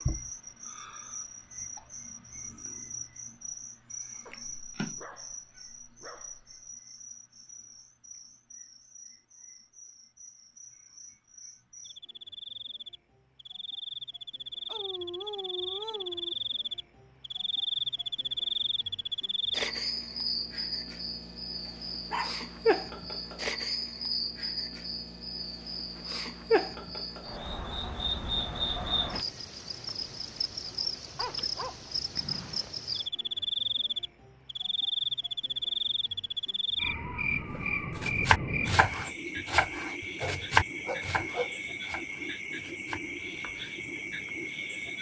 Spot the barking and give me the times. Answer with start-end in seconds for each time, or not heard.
4.2-6.7, 14.7-16.4, 21.6-22.4, 31.1-32.7, 40.2-41.5.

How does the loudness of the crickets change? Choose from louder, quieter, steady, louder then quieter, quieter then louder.
louder.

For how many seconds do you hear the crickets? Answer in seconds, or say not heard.
45 s.